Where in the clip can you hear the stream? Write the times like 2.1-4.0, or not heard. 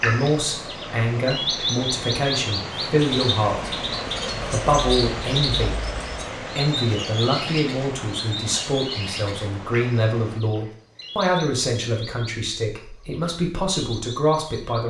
0.0-10.4.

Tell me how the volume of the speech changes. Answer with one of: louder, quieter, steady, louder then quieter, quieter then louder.
steady.